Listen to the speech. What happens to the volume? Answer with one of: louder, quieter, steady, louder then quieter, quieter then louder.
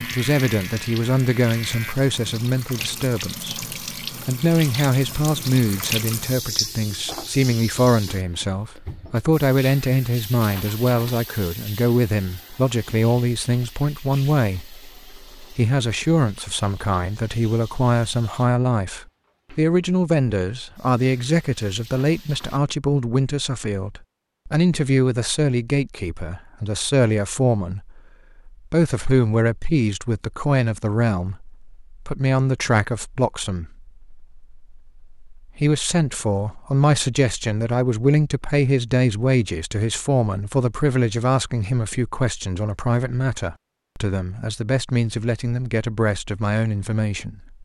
steady.